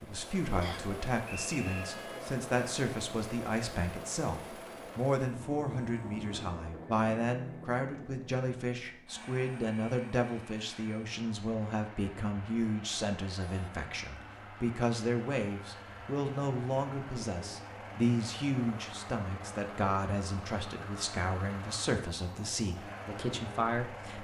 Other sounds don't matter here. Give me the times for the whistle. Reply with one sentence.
The whistle can be heard from 0.6 to 1.9 s.